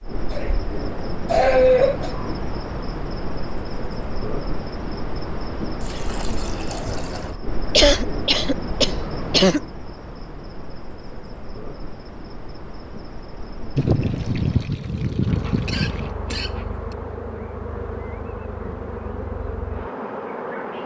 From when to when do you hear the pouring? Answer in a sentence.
You can hear the pouring from 5.7 to 7.3 s and from 13.8 to 16.1 s.